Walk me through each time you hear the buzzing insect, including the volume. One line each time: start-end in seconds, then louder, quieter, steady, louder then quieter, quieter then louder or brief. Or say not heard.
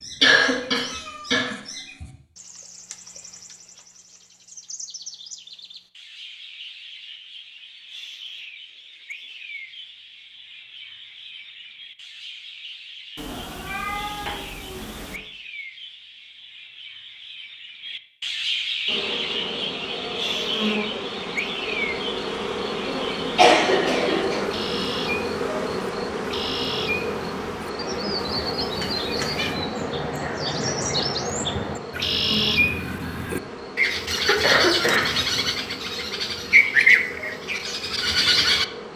18.9-38.9 quieter.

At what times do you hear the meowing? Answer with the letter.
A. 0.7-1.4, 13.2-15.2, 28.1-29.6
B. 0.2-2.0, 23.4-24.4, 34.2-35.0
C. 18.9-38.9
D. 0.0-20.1
A.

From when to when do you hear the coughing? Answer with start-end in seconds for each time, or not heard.
0.2-2.0, 23.4-24.4, 34.2-35.0.